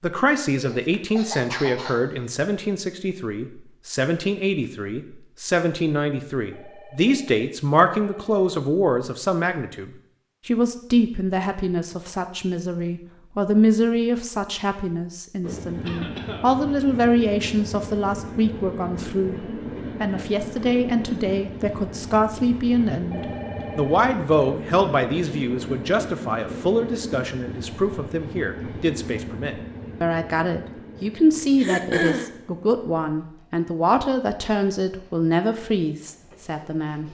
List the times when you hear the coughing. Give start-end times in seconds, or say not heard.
0.6-2.3, 15.8-16.6, 31.6-32.3.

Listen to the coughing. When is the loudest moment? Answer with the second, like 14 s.
32 s.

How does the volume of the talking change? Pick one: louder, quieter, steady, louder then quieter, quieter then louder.
steady.